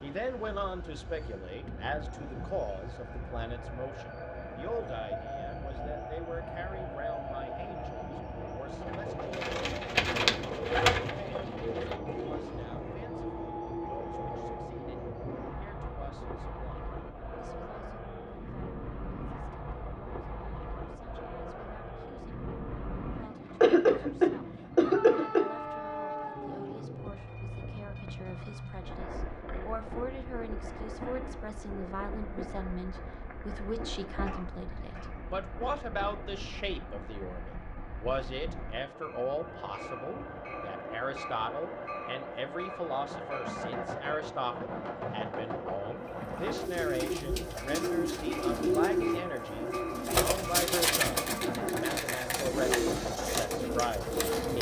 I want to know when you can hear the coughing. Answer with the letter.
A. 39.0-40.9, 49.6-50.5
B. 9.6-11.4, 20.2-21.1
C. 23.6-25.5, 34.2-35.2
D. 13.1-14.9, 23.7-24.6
C.